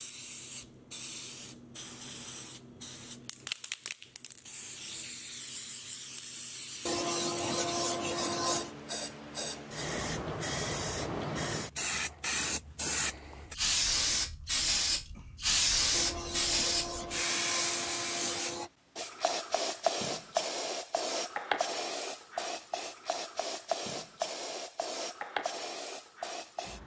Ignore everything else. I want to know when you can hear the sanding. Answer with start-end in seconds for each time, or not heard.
6.8-8.7, 15.9-18.7.